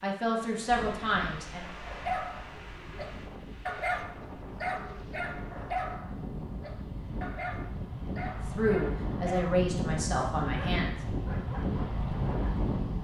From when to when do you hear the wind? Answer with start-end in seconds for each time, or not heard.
0.0-13.0.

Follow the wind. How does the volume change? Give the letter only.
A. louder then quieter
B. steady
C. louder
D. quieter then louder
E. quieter
C.